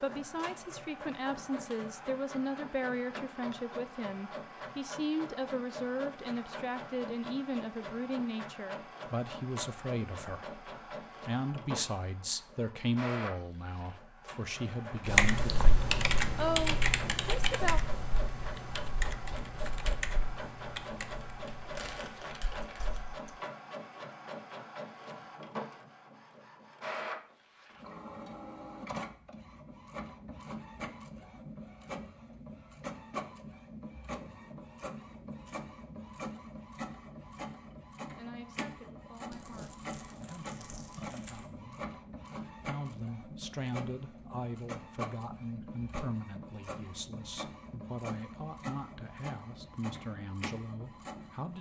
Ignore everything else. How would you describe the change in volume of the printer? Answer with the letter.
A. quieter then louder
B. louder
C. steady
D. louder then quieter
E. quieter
C.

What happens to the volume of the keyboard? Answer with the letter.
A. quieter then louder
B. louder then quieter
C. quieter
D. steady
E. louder
C.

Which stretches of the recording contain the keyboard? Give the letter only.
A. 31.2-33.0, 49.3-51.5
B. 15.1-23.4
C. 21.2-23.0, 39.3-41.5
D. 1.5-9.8
B.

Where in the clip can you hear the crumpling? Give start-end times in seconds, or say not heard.
21.2-23.0, 39.3-41.5.